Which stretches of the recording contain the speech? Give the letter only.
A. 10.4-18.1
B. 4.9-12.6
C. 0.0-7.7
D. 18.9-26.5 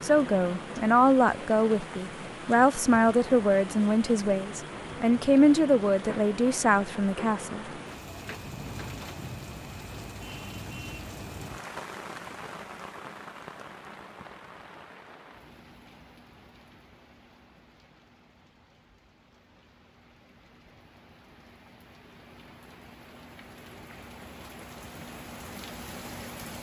C.